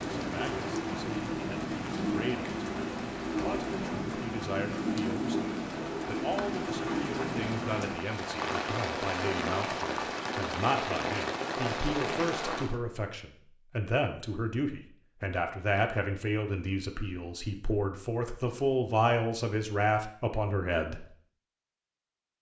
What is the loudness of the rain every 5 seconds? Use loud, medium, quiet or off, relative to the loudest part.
loud, loud, loud, off, off.